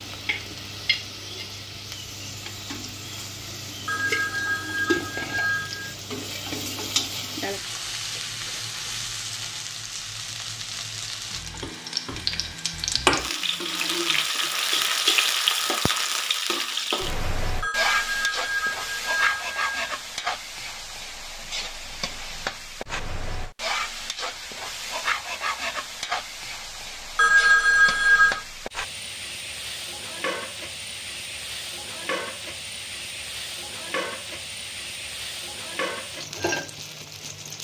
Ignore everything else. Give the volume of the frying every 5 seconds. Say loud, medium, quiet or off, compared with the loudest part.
medium, medium, loud, loud, medium, medium, medium, medium.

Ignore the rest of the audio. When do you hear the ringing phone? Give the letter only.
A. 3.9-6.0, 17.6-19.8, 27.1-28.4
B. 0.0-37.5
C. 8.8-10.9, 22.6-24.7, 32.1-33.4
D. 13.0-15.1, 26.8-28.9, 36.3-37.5
A.